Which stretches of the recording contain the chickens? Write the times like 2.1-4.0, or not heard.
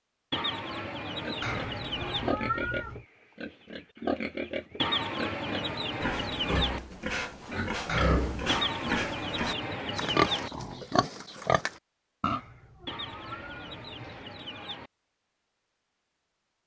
0.3-2.4, 4.8-6.8, 8.4-10.5, 12.8-14.9.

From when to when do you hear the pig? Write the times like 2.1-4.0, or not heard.
1.2-12.4.